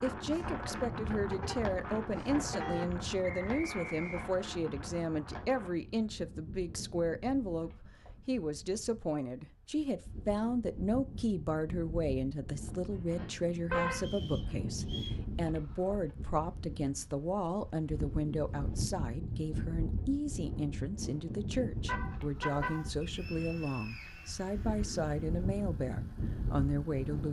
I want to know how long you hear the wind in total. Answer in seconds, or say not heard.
27 s.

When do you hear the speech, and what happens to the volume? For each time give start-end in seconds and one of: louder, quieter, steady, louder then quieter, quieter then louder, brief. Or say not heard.
0.0-27.2 steady.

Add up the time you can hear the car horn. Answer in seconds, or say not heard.
4 s.